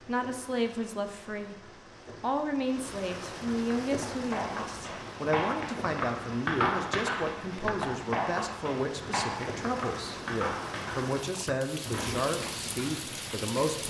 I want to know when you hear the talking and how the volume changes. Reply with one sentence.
You can hear the talking from 0.1 to 13.8 s, at a steady volume.